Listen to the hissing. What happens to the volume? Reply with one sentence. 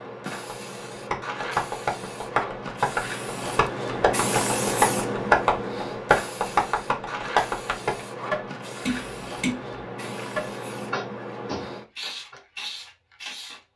The volume of the hissing goes up, then down.